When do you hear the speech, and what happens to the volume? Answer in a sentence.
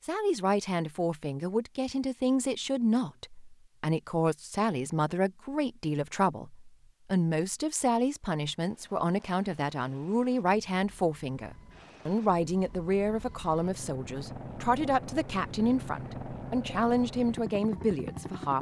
The speech can be heard from 0.0 to 18.5 s, at a steady volume.